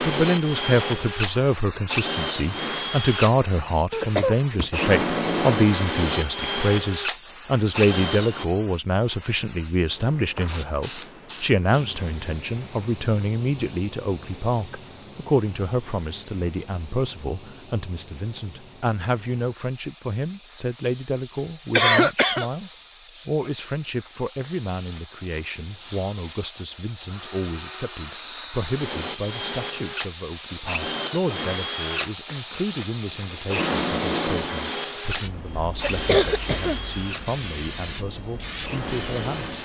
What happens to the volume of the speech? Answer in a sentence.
The loudness of the speech goes down.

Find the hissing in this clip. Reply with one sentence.
The hissing can be heard from 0.1 to 39.6 s.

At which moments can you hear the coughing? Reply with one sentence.
You can hear the coughing from 3.9 to 4.7 s, from 21.7 to 22.5 s and from 35.5 to 37.0 s.